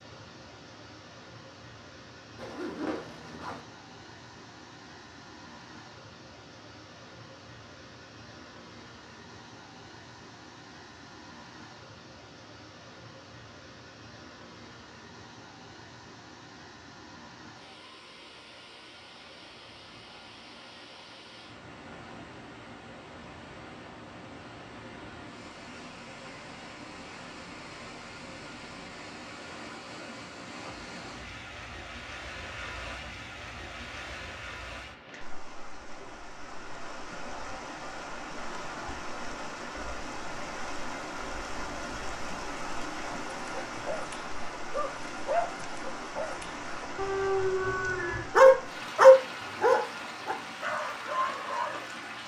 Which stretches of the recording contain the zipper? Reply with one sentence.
The zipper can be heard from 2.4 to 3.6 s.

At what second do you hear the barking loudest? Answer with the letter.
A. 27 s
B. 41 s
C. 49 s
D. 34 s
C.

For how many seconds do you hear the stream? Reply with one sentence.
The stream can be heard for 52 seconds in total.